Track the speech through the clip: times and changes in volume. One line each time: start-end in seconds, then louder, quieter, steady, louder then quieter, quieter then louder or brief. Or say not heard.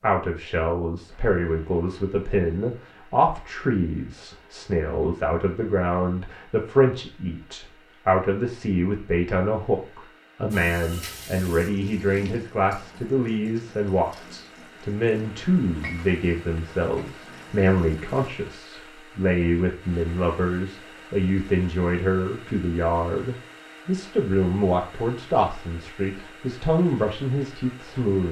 0.0-28.2 steady.